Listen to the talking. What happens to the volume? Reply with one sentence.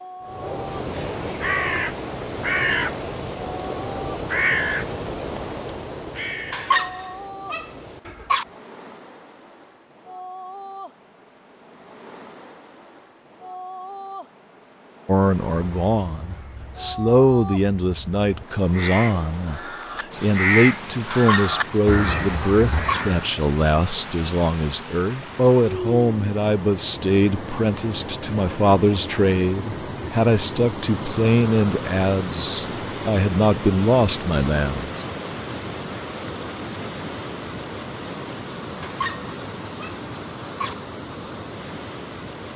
The loudness of the talking stays about the same.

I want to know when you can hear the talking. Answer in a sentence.
The talking can be heard from 15.1 to 35.0 s.